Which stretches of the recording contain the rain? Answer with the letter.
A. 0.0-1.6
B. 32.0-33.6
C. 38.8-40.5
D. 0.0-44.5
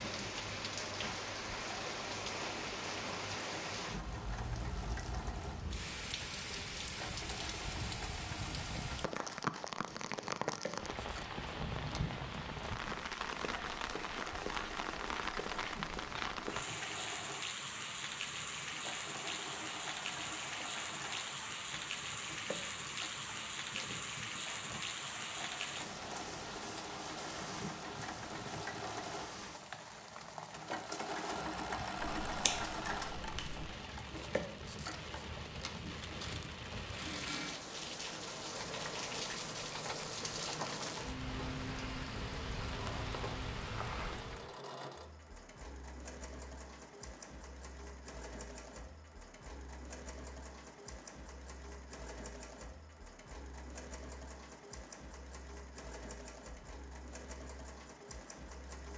D.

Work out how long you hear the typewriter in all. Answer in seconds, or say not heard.
not heard.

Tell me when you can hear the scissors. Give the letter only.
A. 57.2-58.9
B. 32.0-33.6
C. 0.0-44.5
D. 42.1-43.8
B.